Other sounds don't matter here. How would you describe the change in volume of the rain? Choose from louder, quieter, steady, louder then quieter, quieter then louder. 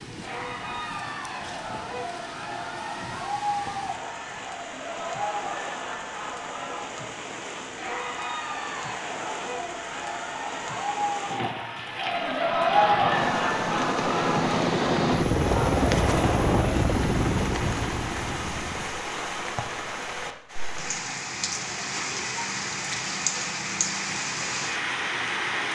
louder.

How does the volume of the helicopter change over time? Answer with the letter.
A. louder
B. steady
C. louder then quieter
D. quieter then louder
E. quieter
C.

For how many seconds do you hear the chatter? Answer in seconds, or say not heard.
17 s.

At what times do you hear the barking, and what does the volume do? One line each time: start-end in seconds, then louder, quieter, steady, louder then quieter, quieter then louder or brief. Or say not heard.
not heard.